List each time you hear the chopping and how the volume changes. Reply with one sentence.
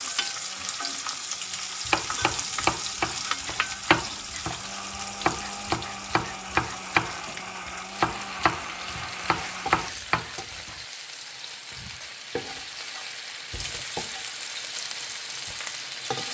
The chopping can be heard from 1.9 to 10.8 s, at a steady volume.